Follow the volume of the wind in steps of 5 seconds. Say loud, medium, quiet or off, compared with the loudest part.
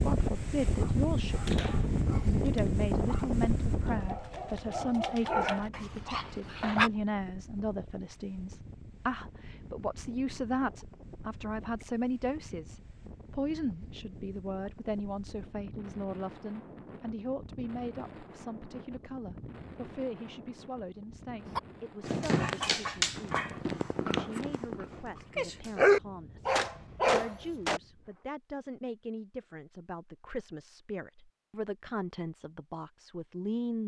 loud, quiet, quiet, quiet, quiet, quiet, off.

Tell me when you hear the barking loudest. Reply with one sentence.
The volume of the barking peaks at 26 seconds.